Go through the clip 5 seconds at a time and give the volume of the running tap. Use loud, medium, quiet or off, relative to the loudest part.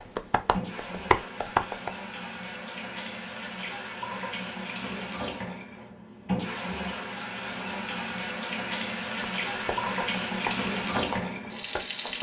medium, loud, loud.